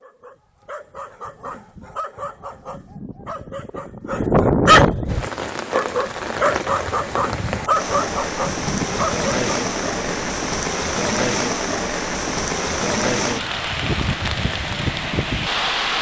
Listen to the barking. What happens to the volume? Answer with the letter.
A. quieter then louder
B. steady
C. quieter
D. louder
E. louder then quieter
E.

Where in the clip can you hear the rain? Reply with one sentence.
You can hear the rain from 5.0 to 15.9 s.